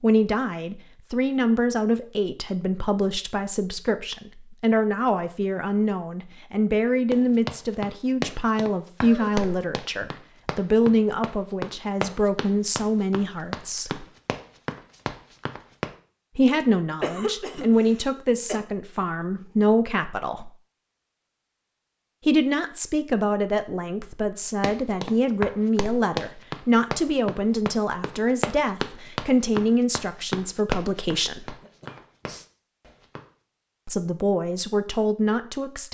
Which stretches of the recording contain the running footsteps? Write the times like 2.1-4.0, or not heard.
7.1-15.9, 24.6-33.2.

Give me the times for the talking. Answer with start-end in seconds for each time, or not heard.
0.0-14.1, 16.4-20.5, 22.2-31.6, 33.9-35.8.